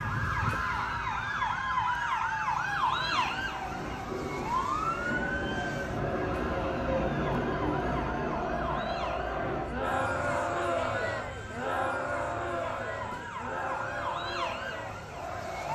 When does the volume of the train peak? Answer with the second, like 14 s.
7 s.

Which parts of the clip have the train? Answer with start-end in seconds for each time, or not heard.
2.5-15.6.